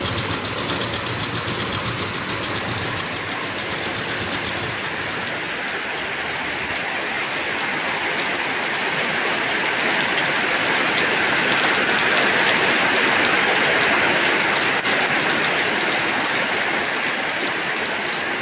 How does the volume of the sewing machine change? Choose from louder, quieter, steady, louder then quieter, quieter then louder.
quieter.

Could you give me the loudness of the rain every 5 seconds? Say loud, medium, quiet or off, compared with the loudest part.
medium, medium, loud, loud.